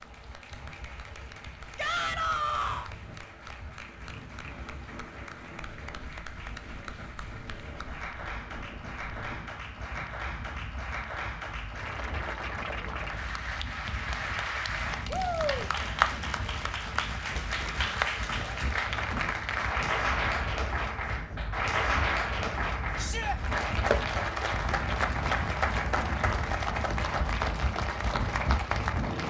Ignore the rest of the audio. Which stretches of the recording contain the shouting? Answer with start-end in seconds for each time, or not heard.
1.8-2.9, 15.1-15.7, 22.9-23.4.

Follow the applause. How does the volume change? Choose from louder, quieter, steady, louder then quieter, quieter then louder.
louder.